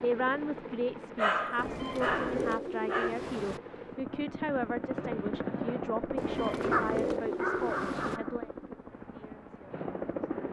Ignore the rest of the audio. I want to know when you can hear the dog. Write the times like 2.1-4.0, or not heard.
1.1-3.1, 6.7-8.7.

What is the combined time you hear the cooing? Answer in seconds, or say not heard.
4 s.